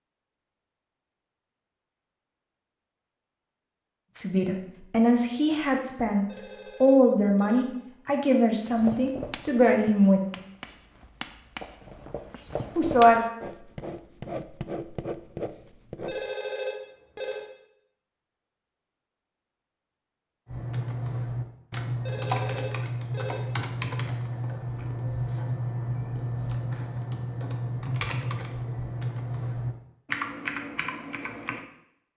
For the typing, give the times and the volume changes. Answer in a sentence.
The typing can be heard from 20.4 to 31.6 s, at a steady volume.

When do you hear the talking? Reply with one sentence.
The talking can be heard from 4.2 to 10.2 s and from 12.8 to 13.2 s.